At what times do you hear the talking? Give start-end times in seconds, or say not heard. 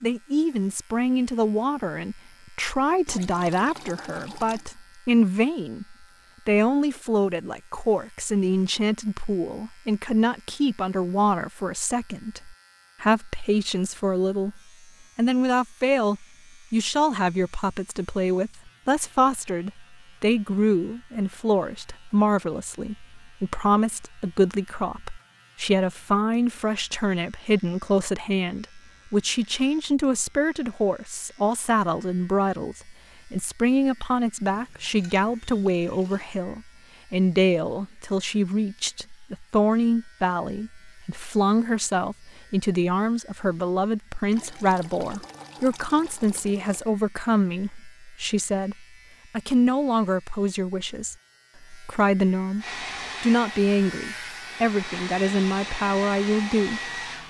0.0-56.9.